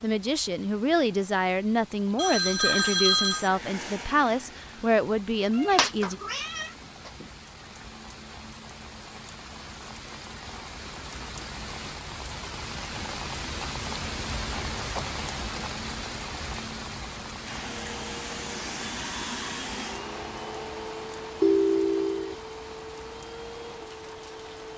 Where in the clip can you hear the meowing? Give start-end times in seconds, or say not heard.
5.5-7.2.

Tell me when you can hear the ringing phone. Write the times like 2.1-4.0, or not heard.
2.1-3.5, 21.4-22.4.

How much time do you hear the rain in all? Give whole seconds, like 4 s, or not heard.
25 s.